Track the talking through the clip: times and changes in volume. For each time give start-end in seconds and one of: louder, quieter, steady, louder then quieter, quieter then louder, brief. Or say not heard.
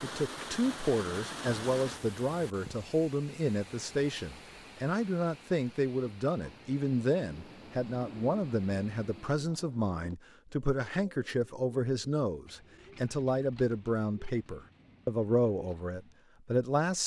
0.0-17.0 steady.